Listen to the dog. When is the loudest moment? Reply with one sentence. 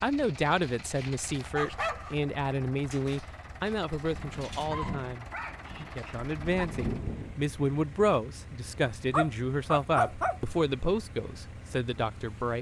The volume of the dog peaks at 10 seconds.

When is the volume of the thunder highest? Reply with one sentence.
The loudest moment of the thunder is at 7 seconds.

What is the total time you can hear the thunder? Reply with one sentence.
You can hear the thunder for 3 seconds altogether.